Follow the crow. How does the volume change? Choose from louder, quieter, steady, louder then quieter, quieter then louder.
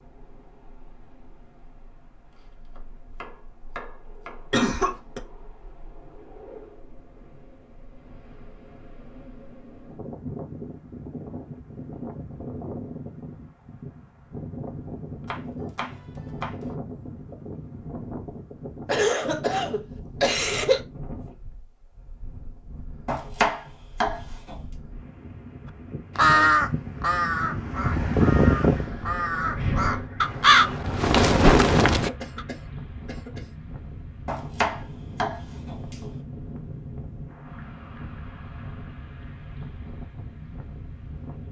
quieter then louder.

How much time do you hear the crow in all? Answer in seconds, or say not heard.
6 s.